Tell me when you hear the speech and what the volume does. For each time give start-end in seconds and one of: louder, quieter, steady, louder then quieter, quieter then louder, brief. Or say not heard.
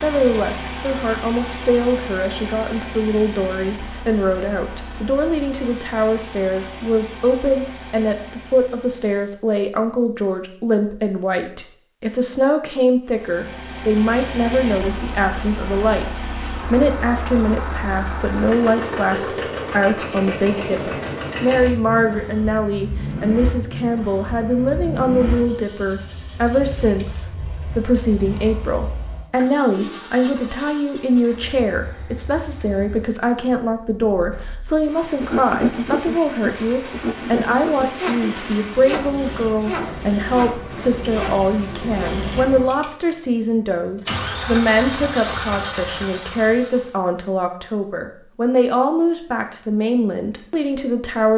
0.0-51.3 steady.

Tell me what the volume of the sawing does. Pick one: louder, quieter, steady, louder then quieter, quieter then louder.
quieter.